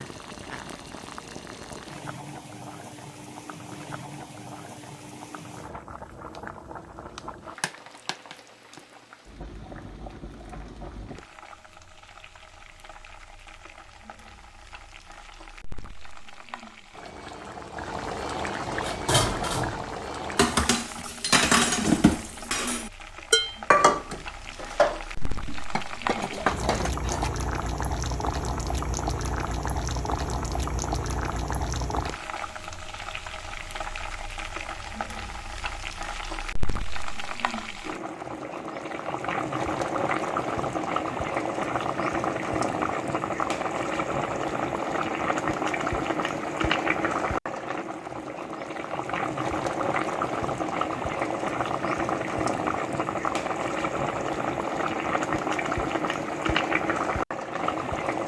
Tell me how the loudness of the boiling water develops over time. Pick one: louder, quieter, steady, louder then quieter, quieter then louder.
louder.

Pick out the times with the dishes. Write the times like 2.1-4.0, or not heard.
18.8-27.3.